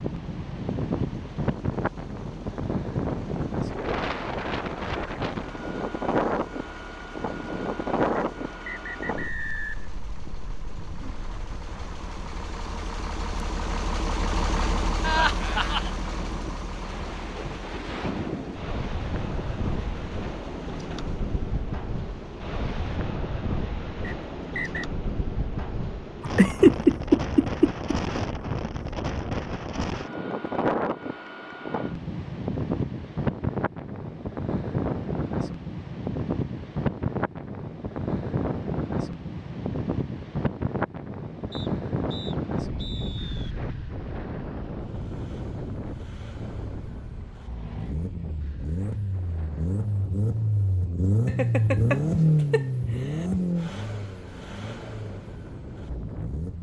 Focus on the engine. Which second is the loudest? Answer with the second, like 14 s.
52 s.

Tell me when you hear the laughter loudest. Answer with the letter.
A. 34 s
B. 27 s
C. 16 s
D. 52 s
B.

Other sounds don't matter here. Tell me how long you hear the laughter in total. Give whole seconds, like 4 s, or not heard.
5 s.